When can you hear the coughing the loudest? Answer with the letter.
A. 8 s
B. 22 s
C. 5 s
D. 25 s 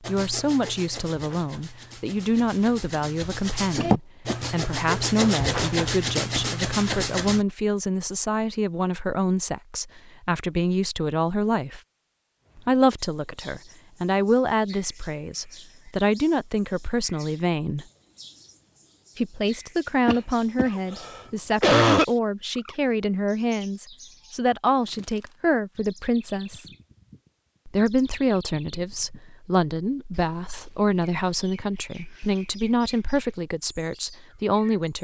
B.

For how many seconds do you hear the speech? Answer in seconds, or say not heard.
32 s.